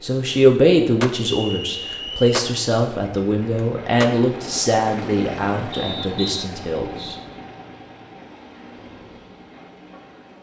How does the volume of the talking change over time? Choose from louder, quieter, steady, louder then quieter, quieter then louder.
quieter.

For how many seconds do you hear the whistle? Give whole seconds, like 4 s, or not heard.
2 s.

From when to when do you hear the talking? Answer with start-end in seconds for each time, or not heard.
0.0-7.2.